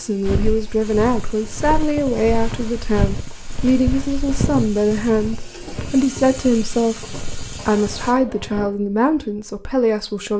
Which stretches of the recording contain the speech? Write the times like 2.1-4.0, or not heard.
0.0-7.0, 7.7-10.3.